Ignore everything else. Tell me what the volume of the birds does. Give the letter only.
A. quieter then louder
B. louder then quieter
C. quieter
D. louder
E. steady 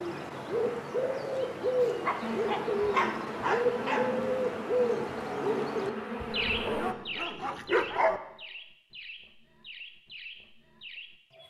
C.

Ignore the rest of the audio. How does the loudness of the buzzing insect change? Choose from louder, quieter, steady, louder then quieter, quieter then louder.
steady.